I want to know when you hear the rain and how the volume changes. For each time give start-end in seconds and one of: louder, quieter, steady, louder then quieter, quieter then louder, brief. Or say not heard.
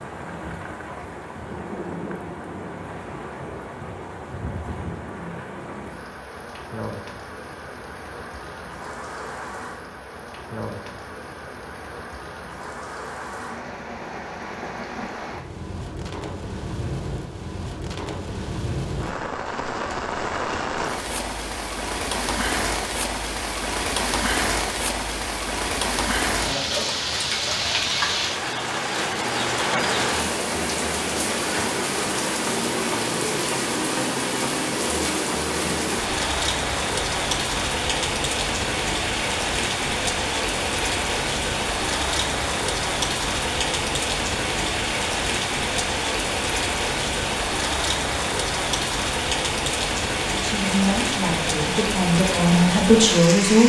0.0-53.6 louder.